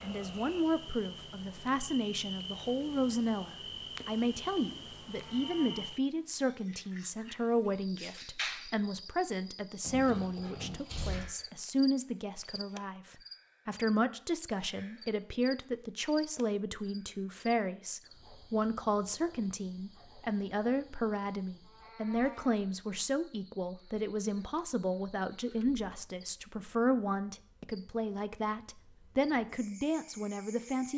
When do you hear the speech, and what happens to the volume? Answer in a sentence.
You can hear the speech from 0.0 to 30.9 s, at a steady volume.